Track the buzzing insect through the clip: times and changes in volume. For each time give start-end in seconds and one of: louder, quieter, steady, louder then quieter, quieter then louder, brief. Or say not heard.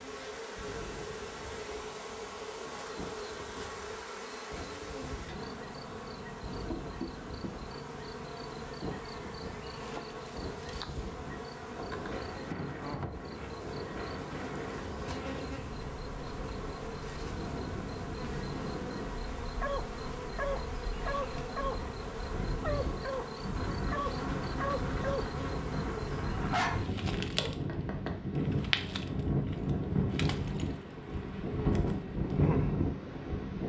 0.0-33.6 steady.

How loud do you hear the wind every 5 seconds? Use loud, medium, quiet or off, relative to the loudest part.
quiet, quiet, medium, medium, medium, loud, loud.